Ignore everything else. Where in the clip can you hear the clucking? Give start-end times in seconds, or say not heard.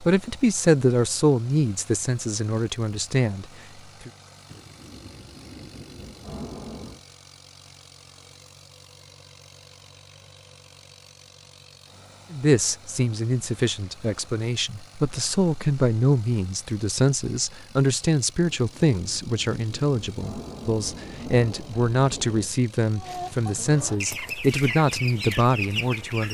22.9-26.2.